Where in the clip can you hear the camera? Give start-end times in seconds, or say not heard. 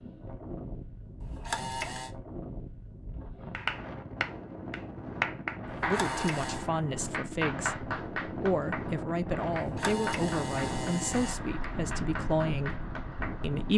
1.2-2.1, 5.7-6.7, 9.5-11.3.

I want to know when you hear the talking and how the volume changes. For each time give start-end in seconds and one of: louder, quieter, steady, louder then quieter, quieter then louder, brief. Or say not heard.
5.8-13.7 steady.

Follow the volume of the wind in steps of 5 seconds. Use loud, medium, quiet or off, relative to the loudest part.
medium, loud, loud.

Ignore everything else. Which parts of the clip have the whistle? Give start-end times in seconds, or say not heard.
not heard.